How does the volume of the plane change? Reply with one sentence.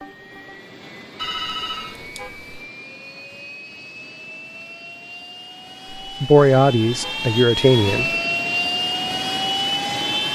The volume of the plane goes up.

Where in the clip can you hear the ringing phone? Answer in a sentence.
The ringing phone can be heard from 1.1 to 2.5 s.